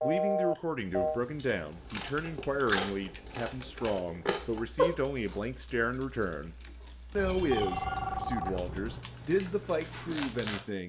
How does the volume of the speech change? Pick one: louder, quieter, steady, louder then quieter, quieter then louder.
steady.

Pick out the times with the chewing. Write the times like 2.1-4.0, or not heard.
0.2-5.3, 8.4-10.6.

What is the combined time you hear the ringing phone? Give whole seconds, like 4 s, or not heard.
3 s.